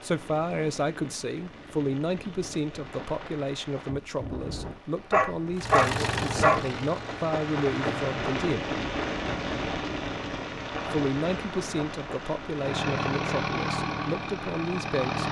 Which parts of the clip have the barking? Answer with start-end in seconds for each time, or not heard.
5.1-6.7.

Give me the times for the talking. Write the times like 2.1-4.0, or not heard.
0.0-8.7, 10.9-15.2.